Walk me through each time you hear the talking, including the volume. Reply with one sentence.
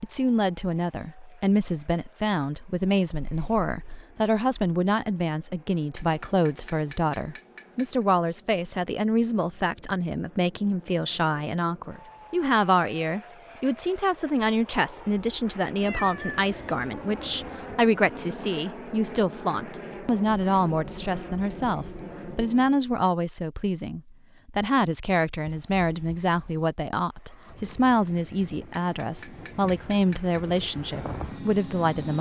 You can hear the talking from 0.0 to 32.1 s, at a steady volume.